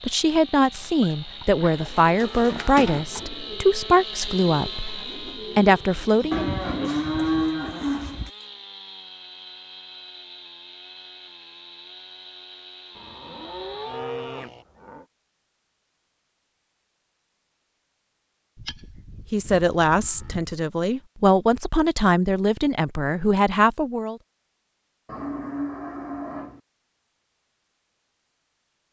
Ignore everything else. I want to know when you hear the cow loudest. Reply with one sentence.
The volume of the cow peaks at 7 seconds.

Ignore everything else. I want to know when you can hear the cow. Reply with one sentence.
You can hear the cow from 0.7 to 3.0 s, from 6.3 to 8.3 s, from 12.9 to 15.1 s, from 18.6 to 20.6 s and from 25.1 to 26.6 s.